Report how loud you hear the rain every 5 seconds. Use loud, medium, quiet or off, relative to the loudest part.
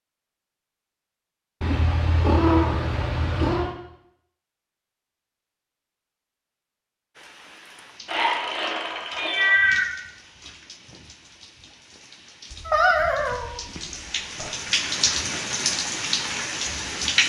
off, quiet, medium, loud.